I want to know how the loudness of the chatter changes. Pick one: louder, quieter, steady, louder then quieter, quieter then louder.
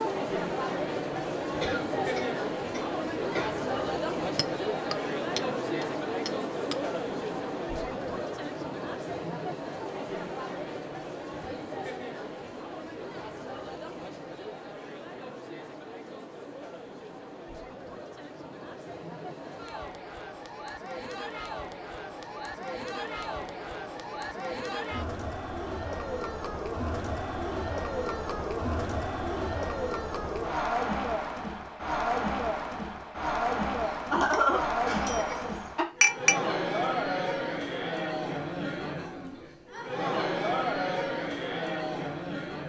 quieter then louder.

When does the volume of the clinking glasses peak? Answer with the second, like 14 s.
36 s.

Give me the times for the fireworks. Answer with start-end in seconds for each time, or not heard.
not heard.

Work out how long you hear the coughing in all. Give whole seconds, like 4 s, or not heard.
4 s.